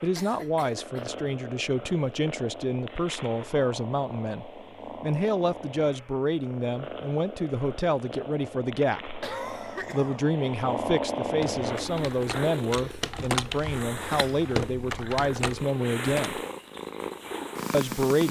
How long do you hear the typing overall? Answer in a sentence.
The typing can be heard for 5 seconds in total.